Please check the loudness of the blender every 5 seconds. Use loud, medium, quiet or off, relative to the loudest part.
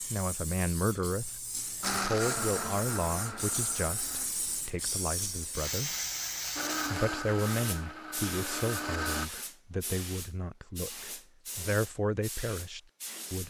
loud, loud, off.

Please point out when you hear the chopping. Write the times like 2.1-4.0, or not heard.
not heard.